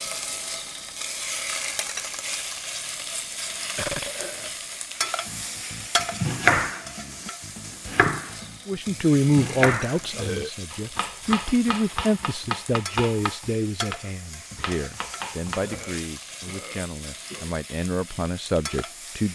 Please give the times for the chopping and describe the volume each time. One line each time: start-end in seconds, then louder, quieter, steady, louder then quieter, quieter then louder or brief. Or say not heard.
5.2-15.8 quieter.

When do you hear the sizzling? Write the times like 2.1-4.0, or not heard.
0.0-19.3.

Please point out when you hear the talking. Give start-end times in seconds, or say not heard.
8.7-19.3.